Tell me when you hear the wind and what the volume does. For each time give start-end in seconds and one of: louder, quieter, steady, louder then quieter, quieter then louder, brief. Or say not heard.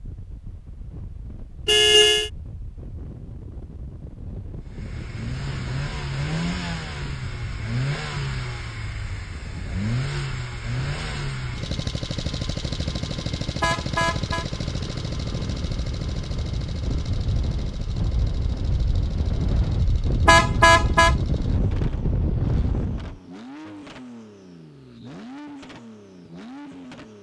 0.0-23.2 louder.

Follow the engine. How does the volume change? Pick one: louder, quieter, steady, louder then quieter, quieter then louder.
quieter.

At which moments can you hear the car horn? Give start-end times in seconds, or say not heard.
1.6-2.3, 13.6-14.4, 20.2-21.1.